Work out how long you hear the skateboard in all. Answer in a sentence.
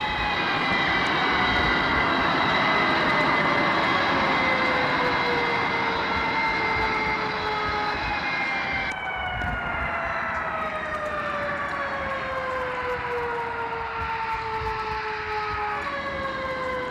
The skateboard can't be heard in this clip.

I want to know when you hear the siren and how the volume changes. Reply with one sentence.
You can hear the siren from 0.0 to 16.8 s, at a steady volume.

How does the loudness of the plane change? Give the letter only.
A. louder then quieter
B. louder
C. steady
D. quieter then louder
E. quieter
E.